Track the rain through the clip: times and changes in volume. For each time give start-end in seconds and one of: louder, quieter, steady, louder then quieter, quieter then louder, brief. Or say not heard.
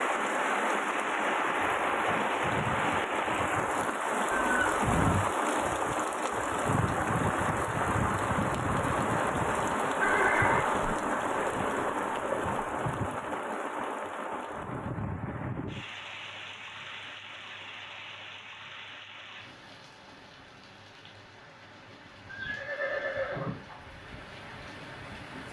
0.0-25.4 quieter.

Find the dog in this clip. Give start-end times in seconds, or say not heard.
not heard.